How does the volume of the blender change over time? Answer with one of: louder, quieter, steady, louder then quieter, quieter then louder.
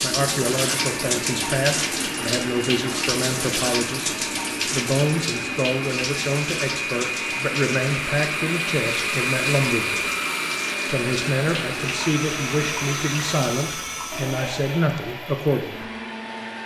louder then quieter.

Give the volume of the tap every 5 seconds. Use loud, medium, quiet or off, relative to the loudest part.
loud, medium, medium, off.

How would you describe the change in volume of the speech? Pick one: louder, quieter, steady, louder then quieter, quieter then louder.
steady.